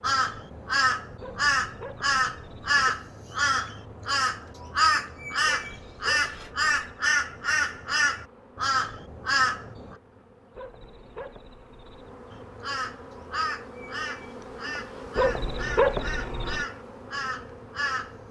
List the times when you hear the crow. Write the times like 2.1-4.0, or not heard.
0.0-9.9, 12.3-18.2.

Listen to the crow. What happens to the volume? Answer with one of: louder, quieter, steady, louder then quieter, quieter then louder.
quieter.